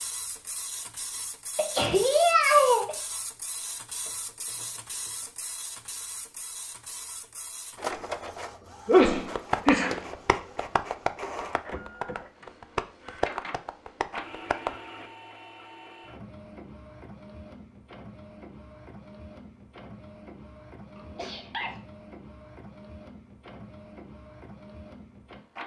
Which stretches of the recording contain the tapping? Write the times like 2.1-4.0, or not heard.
9.2-14.8.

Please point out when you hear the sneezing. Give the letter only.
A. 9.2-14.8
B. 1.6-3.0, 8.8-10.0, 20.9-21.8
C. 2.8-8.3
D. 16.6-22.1
B.